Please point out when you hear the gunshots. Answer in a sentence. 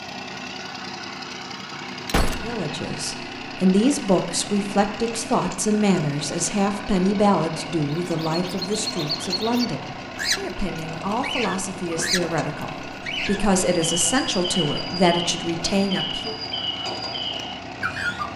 The gunshots can be heard from 2.0 to 2.6 s.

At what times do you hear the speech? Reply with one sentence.
You can hear the speech from 2.4 to 16.4 s.